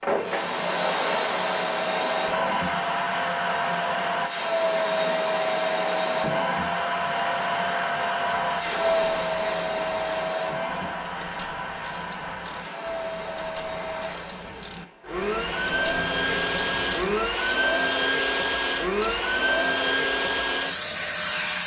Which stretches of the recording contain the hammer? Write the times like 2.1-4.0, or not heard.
not heard.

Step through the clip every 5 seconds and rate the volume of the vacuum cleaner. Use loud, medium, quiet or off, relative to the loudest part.
loud, loud, medium, loud, loud.